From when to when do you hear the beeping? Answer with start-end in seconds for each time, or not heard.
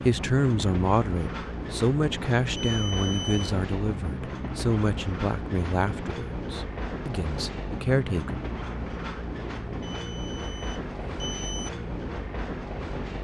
2.5-3.5, 9.8-11.7.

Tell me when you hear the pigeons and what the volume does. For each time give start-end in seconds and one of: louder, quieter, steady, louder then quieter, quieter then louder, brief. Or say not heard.
not heard.